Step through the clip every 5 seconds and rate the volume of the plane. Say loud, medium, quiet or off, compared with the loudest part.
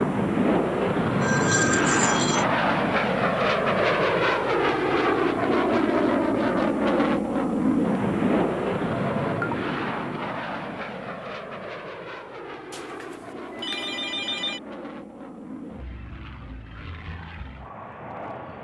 loud, loud, quiet, quiet.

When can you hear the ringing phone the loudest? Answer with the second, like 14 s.
2 s.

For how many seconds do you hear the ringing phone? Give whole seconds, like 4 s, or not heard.
4 s.